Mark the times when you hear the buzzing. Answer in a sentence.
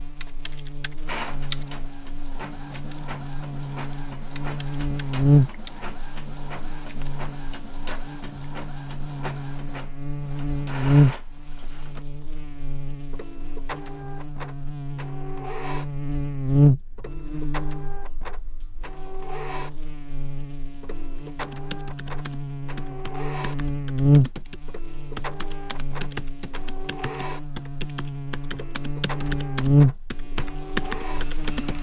You can hear the buzzing from 0.0 to 31.7 s.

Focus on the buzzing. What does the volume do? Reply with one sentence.
The volume of the buzzing stays about the same.